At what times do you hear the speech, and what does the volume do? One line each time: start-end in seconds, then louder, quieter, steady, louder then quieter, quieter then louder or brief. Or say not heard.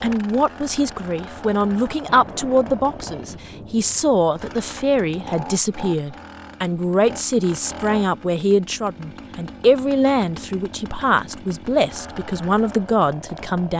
0.0-13.7 steady.